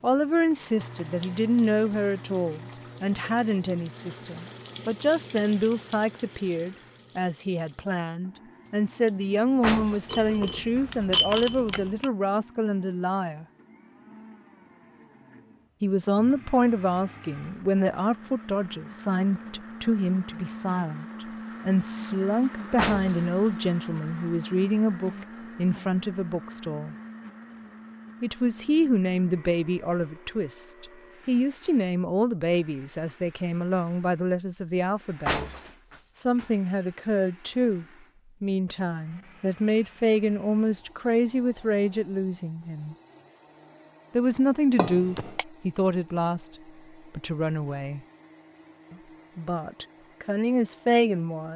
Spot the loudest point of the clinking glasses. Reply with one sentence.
The loudest moment of the clinking glasses is at 11 seconds.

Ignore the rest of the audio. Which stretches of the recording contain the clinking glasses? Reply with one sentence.
You can hear the clinking glasses from 10.1 to 12.1 s and from 44.8 to 45.5 s.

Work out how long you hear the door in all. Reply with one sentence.
You can hear the door for 3 seconds altogether.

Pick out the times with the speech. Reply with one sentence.
The speech can be heard from 0.0 to 13.4 s, from 15.8 to 26.9 s, from 28.2 to 35.4 s, from 36.1 to 43.0 s, from 44.1 to 48.0 s and from 48.9 to 51.5 s.